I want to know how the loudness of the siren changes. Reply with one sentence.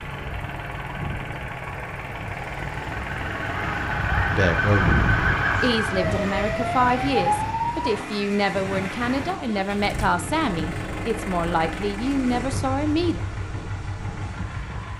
The volume of the siren goes up.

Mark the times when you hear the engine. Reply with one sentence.
You can hear the engine from 0.0 to 14.9 s.